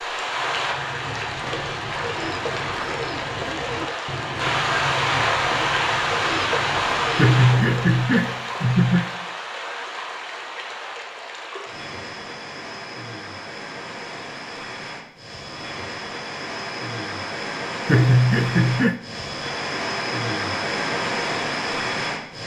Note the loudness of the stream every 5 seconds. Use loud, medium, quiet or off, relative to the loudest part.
loud, loud, medium, medium, loud.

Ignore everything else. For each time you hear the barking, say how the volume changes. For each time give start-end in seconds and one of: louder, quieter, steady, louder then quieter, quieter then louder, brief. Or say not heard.
not heard.